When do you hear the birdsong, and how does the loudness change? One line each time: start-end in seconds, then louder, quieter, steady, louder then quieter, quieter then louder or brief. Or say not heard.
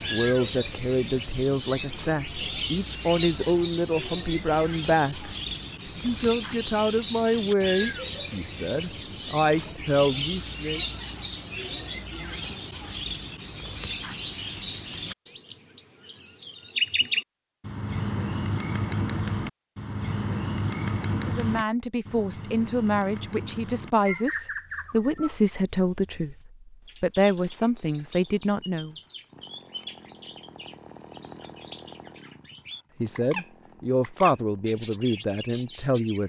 0.0-36.2 quieter.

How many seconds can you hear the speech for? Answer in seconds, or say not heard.
22 s.